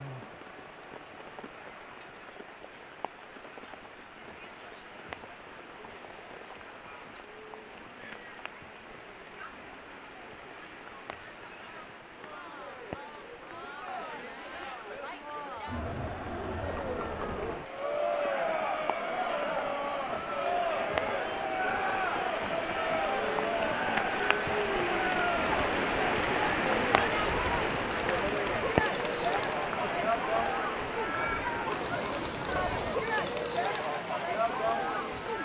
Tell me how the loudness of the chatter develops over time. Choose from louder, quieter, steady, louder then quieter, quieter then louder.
louder.